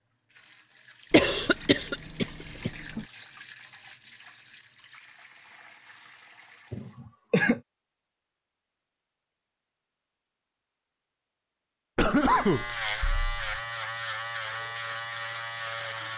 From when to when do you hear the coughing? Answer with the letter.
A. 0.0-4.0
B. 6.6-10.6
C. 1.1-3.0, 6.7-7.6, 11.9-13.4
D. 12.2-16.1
C.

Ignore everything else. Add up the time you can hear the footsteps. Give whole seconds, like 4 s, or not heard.
not heard.